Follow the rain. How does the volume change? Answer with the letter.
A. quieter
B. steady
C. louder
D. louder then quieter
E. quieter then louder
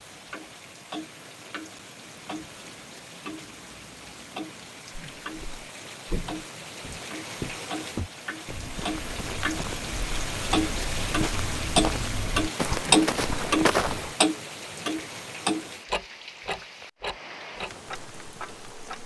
D.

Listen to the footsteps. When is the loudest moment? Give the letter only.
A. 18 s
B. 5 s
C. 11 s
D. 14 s
D.